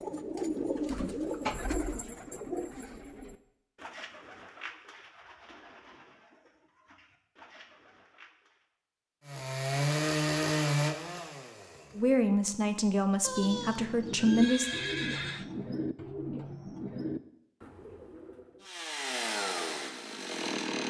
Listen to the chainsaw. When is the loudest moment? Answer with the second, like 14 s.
10 s.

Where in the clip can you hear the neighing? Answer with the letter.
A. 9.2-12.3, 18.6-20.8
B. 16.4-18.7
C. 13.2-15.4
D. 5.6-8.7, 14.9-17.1
C.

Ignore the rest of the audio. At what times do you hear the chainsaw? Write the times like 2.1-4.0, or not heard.
9.2-12.3, 18.6-20.8.